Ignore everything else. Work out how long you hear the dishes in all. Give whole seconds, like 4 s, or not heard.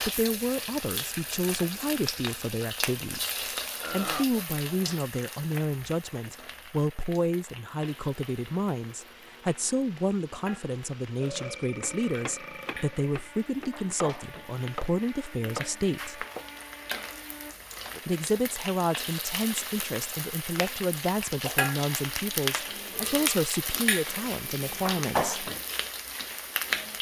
not heard.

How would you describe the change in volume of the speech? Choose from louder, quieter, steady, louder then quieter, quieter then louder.
steady.